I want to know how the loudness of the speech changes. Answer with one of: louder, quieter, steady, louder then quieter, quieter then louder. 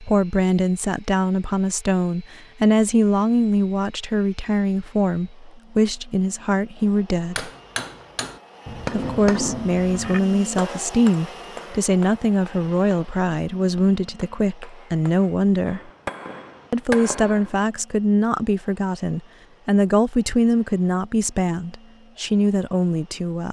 steady.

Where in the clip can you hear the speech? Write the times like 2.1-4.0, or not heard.
0.0-7.5, 8.9-15.9, 16.7-23.4.